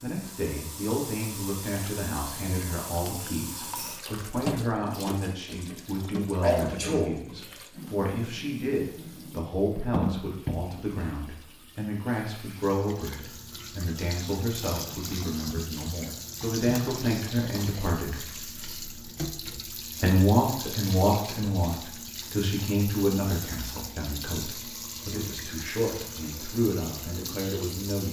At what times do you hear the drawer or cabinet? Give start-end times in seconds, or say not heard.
not heard.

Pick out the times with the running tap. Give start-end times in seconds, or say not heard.
0.0-28.0.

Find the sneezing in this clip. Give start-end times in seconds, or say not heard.
6.4-7.2.